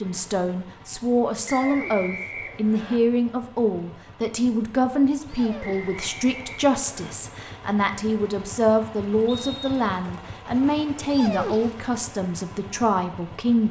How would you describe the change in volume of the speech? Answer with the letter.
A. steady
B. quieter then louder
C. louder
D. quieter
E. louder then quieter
A.